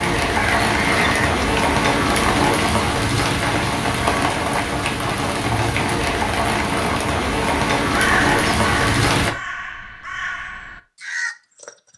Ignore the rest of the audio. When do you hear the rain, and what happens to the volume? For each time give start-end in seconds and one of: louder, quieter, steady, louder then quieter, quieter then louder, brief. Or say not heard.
0.0-9.3 steady.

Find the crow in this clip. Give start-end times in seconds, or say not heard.
0.2-1.4, 7.9-11.9.